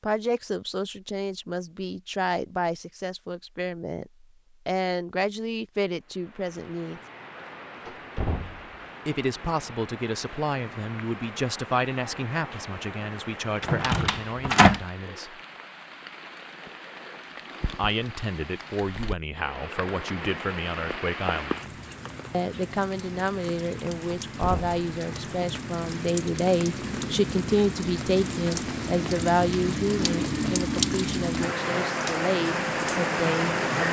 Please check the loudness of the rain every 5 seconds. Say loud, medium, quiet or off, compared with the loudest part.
off, quiet, quiet, quiet, medium, medium, loud.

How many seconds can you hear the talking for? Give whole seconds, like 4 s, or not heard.
29 s.